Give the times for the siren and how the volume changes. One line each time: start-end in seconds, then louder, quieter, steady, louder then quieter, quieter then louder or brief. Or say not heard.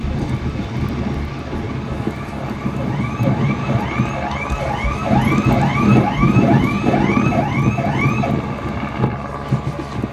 0.0-8.3 louder.